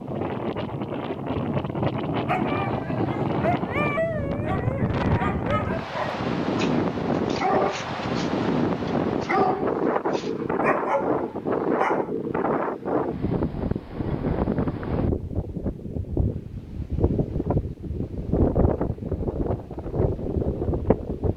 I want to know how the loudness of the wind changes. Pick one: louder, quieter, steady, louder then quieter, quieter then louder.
steady.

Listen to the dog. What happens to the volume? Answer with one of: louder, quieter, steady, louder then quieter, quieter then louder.
steady.